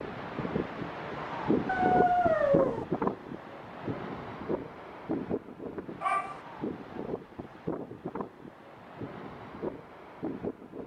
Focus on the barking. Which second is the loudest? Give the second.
2 s.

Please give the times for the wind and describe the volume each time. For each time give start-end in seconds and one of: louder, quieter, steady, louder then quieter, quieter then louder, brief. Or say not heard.
0.0-10.8 quieter.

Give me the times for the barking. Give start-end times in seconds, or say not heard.
1.6-2.9, 6.0-6.4.